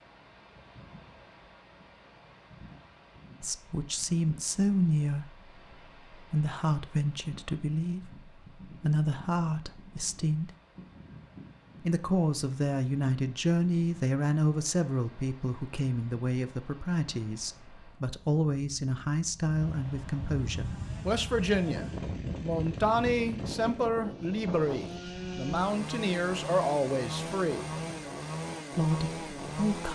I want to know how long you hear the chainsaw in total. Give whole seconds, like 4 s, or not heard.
9 s.